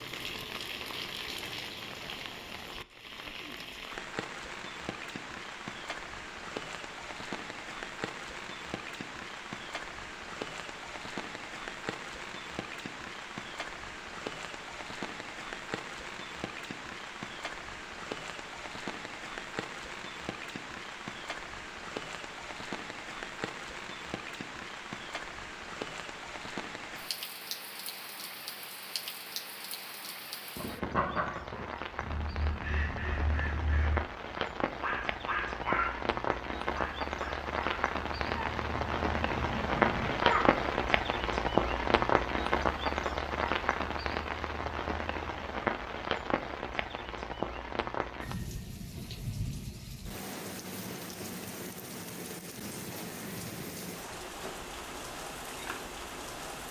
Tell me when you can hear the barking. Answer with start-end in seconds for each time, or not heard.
not heard.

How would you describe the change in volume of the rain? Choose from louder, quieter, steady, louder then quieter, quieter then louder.
louder then quieter.